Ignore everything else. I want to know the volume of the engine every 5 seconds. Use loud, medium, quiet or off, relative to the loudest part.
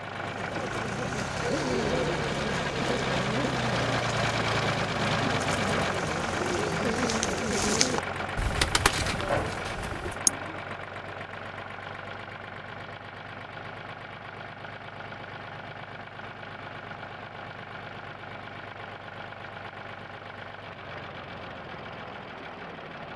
loud, loud, medium, medium, medium.